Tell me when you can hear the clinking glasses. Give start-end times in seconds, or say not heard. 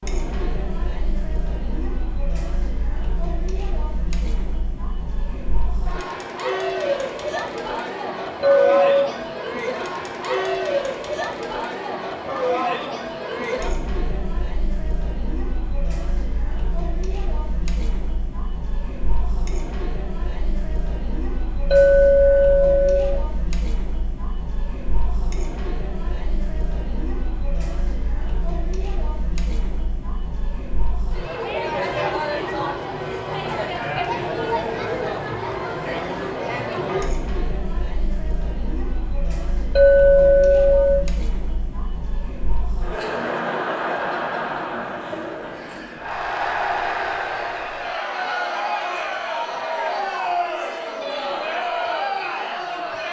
8.4-9.1, 21.7-23.2, 39.8-41.0.